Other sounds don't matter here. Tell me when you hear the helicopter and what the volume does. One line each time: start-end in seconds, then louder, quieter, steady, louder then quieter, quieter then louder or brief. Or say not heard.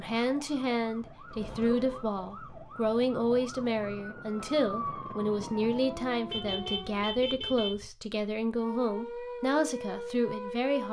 not heard.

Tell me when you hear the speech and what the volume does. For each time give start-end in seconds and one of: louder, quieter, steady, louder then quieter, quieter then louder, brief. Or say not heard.
0.0-10.8 steady.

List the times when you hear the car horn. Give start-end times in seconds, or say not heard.
1.2-2.0, 6.3-7.8.